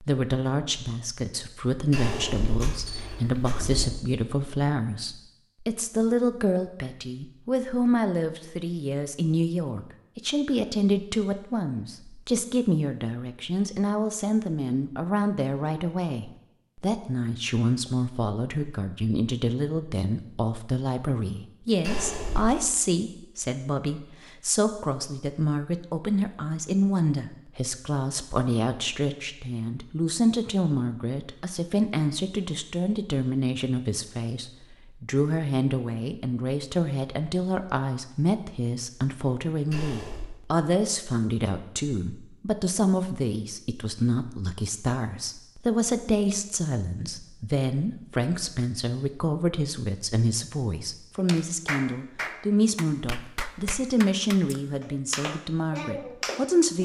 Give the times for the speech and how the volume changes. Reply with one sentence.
You can hear the speech from 0.0 to 56.8 s, at a steady volume.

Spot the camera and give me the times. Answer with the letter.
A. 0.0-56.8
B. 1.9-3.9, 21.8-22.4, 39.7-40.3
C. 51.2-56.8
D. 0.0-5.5
B.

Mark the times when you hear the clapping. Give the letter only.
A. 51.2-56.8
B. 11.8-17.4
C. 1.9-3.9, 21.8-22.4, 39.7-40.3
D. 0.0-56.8
A.